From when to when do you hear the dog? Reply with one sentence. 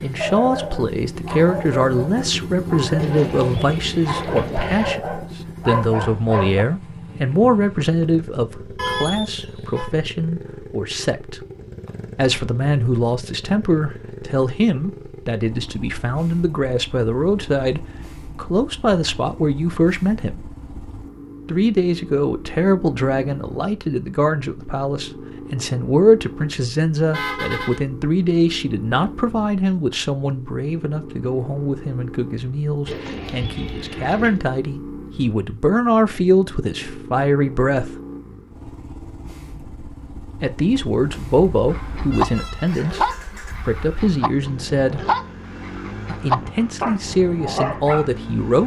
The dog can be heard from 0.2 to 6.7 s and from 41.7 to 48.1 s.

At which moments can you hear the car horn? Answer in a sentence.
You can hear the car horn from 8.8 to 9.9 s, from 27.1 to 27.8 s and from 41.0 to 42.8 s.